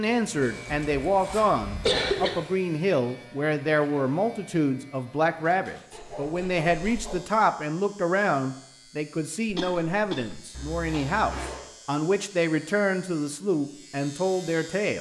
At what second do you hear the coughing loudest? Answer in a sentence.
The loudest moment of the coughing is at 2 seconds.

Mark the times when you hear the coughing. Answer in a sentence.
The coughing can be heard from 1.8 to 2.5 s and from 9.5 to 10.3 s.